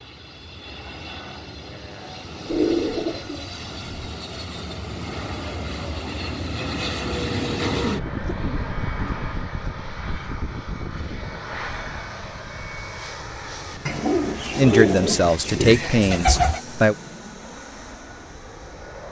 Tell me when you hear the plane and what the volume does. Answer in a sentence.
The plane can be heard from 0.0 to 19.0 s, getting louder then quieter.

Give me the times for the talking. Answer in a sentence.
You can hear the talking from 14.6 to 16.9 s.